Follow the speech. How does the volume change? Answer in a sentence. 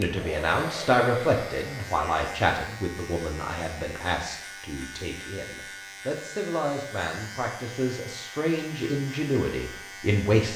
The volume of the speech goes down, then up.